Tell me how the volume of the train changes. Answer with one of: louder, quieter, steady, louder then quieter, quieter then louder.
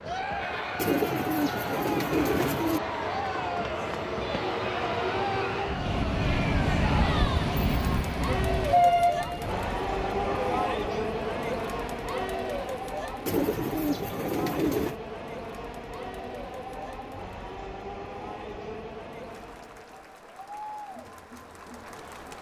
louder then quieter.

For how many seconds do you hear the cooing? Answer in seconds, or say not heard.
4 s.